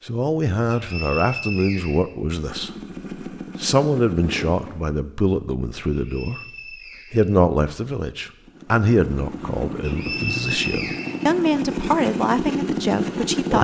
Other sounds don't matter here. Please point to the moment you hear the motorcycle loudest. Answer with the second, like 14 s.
13 s.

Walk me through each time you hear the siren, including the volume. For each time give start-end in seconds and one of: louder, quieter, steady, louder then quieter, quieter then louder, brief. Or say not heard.
not heard.